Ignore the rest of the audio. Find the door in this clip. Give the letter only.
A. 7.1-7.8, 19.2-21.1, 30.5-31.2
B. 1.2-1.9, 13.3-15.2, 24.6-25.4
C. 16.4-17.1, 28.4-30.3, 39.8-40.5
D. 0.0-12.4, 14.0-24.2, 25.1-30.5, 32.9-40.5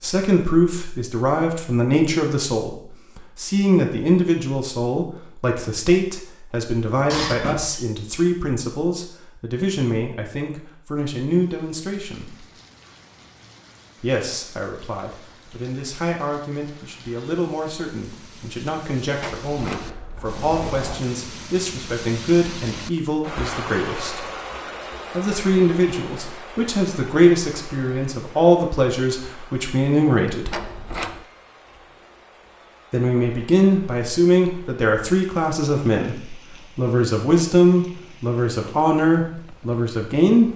A.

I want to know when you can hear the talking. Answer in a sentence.
You can hear the talking from 0.0 to 12.4 s, from 14.0 to 24.2 s, from 25.1 to 30.5 s and from 32.9 to 40.5 s.